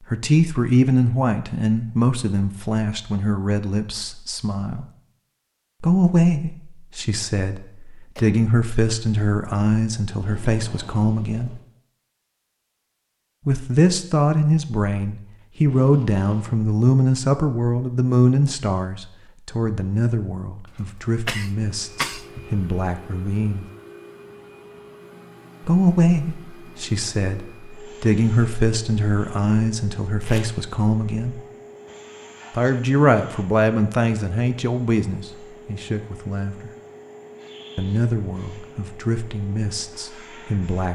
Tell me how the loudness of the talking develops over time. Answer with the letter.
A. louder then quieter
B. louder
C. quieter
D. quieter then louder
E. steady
E.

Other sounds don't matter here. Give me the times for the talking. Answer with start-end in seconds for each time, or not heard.
0.1-4.8, 5.8-11.6, 13.4-23.6, 25.6-31.4, 32.5-36.7, 37.8-40.9.